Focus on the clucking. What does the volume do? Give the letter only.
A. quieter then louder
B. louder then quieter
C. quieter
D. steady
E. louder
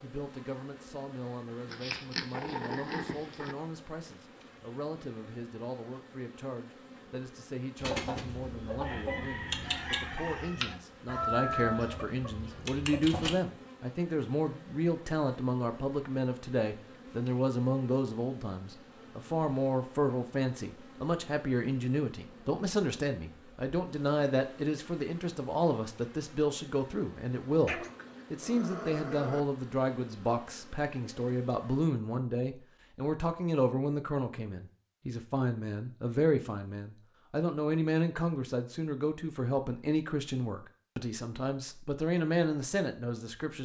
B.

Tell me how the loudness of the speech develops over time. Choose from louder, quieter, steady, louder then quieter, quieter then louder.
louder.